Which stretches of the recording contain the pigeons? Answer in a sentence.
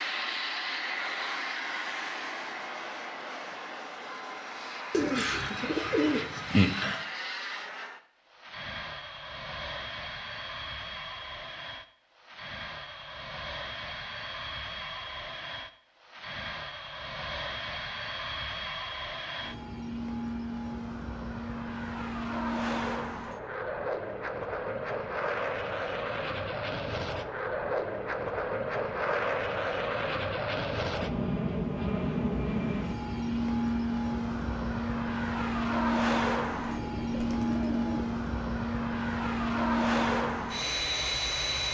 The pigeons can be heard from 4.9 to 7.0 s and from 36.7 to 38.1 s.